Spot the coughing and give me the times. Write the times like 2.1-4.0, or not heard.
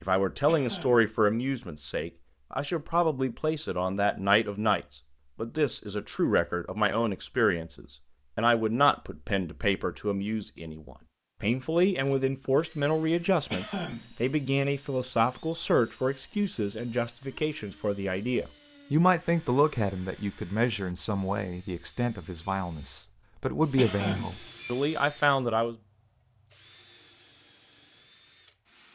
0.5-1.1, 13.5-14.1, 23.8-24.4.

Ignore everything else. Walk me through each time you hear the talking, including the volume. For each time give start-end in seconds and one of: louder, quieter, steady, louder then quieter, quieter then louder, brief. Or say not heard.
0.0-25.8 steady.